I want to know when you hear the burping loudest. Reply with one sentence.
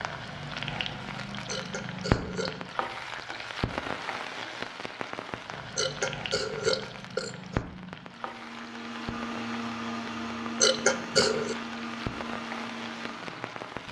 The volume of the burping peaks at 11 seconds.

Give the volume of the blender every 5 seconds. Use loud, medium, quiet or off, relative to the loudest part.
off, loud, loud.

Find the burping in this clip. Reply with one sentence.
The burping can be heard from 1.4 to 2.6 s, from 5.8 to 7.6 s and from 10.6 to 11.6 s.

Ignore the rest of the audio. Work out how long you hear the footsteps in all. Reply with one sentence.
The footsteps can't be heard in this clip.